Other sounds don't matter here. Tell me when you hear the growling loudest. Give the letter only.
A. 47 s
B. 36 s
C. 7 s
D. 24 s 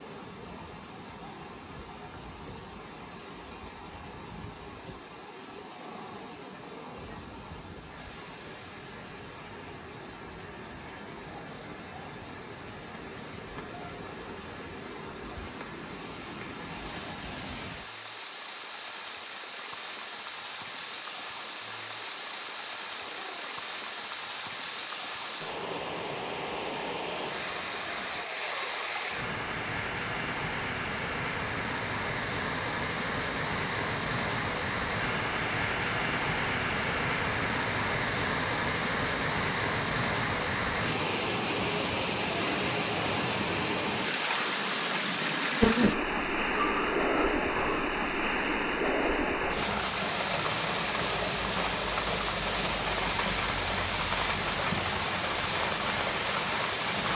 A.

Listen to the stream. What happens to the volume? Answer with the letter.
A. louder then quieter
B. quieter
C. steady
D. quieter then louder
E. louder
E.